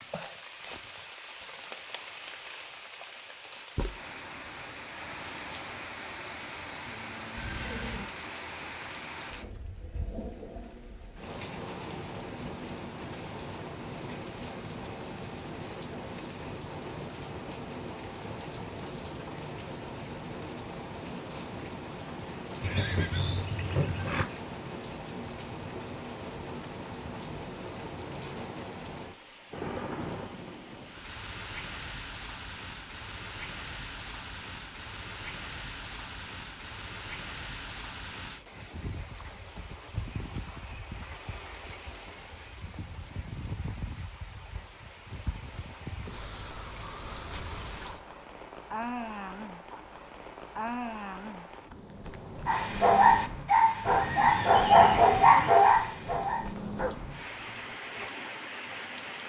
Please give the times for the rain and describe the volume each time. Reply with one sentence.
You can hear the rain from 0.0 to 59.2 s, at a steady volume.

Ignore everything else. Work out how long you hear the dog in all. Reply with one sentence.
The dog can be heard for 6 seconds in total.